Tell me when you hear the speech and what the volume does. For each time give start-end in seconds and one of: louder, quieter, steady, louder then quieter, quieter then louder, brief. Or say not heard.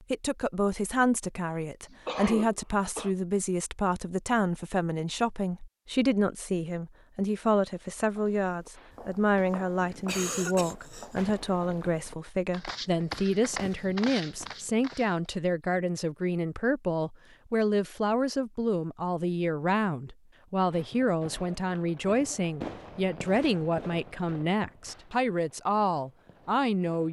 0.1-27.0 steady.